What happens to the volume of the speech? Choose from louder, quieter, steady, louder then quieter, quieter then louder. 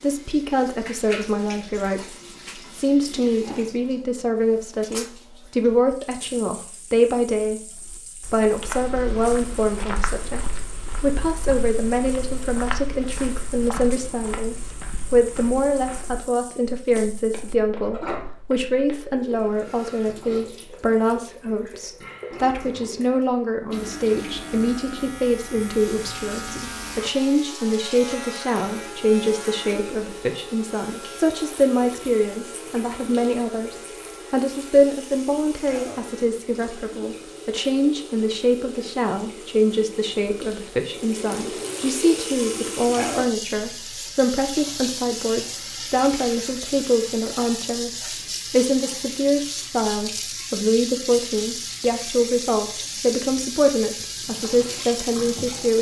steady.